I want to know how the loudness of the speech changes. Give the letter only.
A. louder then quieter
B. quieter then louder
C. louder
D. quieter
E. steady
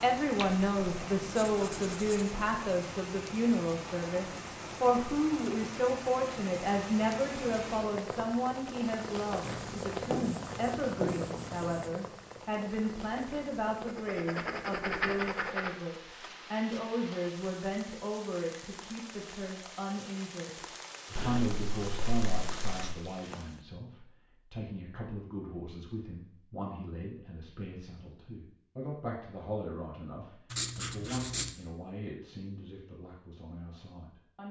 D.